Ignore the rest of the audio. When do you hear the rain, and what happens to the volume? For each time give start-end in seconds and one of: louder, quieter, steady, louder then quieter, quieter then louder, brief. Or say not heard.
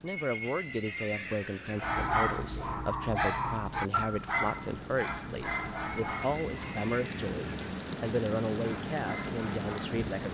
0.0-10.3 louder.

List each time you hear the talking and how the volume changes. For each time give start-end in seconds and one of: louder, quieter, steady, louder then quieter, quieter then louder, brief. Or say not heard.
0.0-10.3 steady.